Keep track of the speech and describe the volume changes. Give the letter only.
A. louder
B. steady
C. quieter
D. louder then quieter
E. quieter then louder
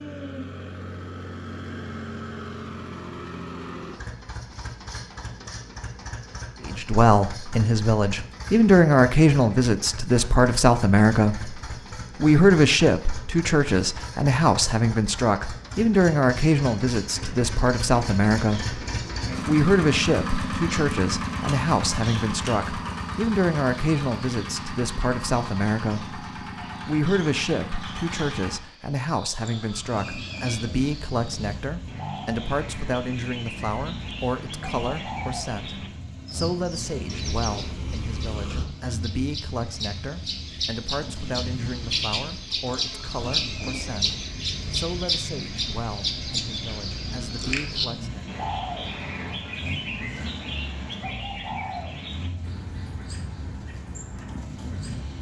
C.